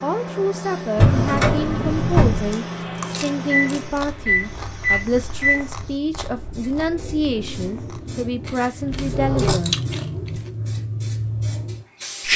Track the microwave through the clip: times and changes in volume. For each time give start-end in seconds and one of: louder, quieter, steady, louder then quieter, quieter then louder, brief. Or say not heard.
0.0-5.7 louder.